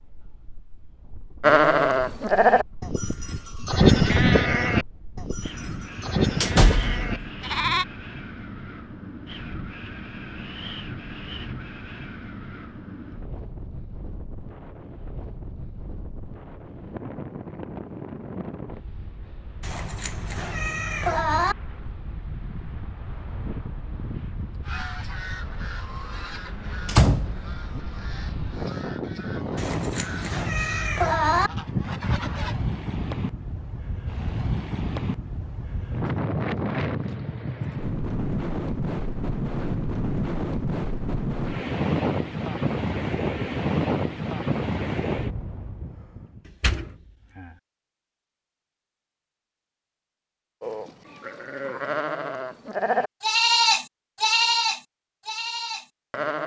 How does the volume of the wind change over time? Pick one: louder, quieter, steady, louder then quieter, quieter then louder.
louder.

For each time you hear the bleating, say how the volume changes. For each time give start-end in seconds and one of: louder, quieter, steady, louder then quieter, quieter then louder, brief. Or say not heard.
1.4-7.8 quieter
50.6-56.4 louder then quieter.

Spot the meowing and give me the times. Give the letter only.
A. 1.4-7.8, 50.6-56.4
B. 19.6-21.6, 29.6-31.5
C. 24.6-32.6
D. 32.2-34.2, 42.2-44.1
B.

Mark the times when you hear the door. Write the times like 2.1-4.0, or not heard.
6.4-7.0, 26.9-27.8, 46.6-47.5.